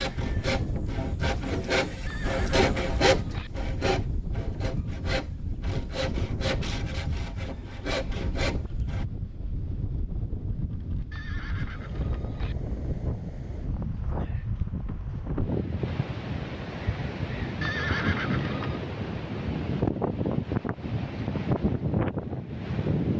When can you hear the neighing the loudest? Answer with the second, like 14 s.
18 s.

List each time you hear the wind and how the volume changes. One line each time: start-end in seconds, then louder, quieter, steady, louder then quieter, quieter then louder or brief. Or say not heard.
0.0-23.1 louder.